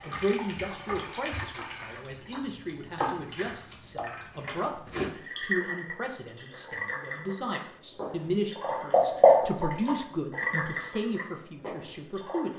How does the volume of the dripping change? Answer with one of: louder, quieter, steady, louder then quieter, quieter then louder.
louder then quieter.